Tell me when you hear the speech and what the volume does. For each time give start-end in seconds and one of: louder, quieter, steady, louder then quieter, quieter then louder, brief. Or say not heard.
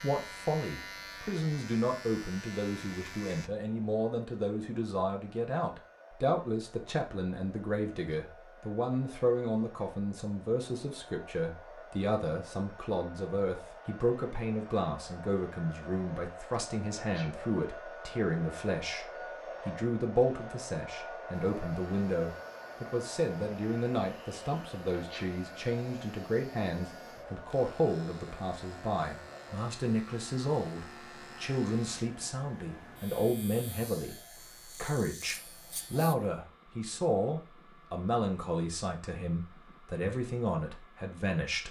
0.0-41.6 steady.